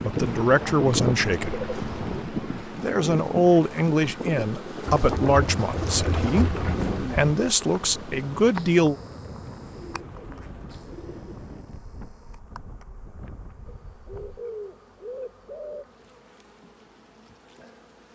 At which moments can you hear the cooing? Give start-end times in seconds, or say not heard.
0.2-2.2, 4.8-7.3, 9.6-11.7, 13.7-15.8.